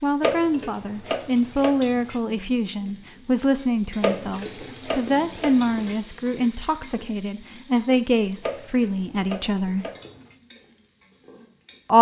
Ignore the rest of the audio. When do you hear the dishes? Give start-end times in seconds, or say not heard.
0.2-2.2, 4.0-6.0, 8.4-10.3.